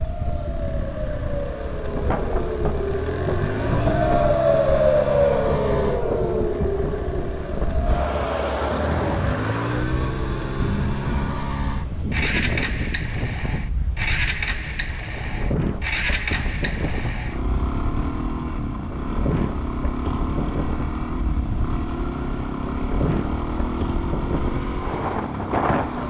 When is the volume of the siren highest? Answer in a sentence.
The loudest moment of the siren is at 5 seconds.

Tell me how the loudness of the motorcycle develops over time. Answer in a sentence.
The loudness of the motorcycle stays about the same.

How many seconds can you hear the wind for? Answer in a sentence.
You can hear the wind for 26 seconds altogether.